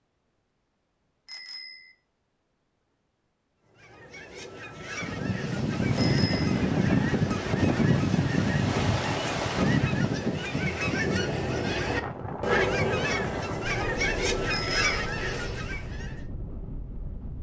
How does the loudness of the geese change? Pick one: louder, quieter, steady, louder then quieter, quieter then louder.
louder.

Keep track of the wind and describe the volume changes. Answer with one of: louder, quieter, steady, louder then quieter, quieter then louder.
quieter.